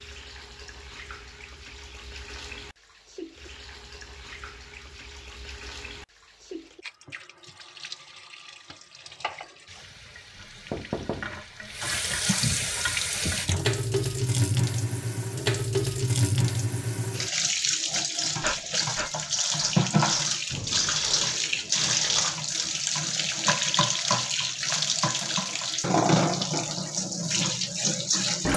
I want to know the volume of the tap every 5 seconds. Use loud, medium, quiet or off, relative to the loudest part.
quiet, quiet, loud, loud, loud, loud.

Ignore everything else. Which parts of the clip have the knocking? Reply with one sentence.
You can hear the knocking from 10.3 to 11.4 s.